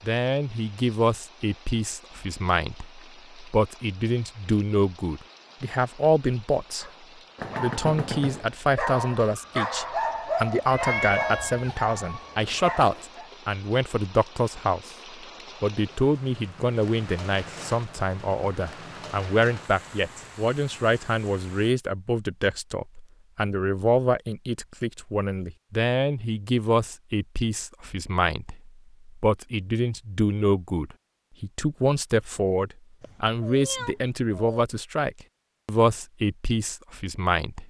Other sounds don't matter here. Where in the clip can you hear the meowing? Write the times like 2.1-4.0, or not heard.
10.7-11.8, 33.0-34.6.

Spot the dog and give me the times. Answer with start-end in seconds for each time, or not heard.
6.8-13.3.